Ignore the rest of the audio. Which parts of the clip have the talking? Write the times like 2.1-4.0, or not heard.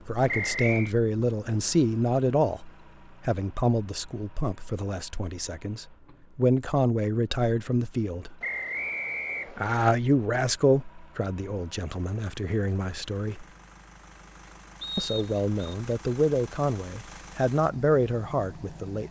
0.1-8.3, 9.5-13.4, 14.9-19.0.